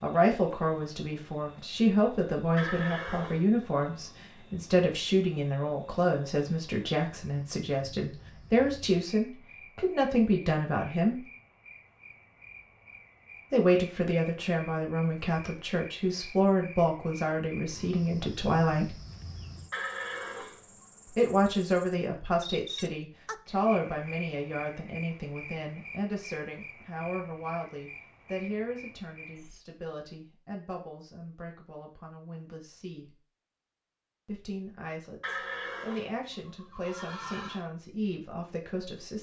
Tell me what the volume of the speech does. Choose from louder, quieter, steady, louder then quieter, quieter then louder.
quieter.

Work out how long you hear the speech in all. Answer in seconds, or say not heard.
34 s.